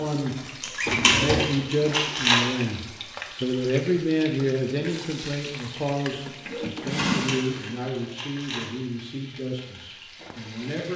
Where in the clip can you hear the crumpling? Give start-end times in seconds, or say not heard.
0.6-2.4, 7.1-8.7.